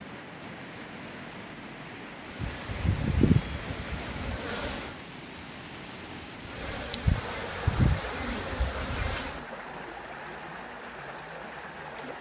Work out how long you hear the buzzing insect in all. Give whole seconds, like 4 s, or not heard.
6 s.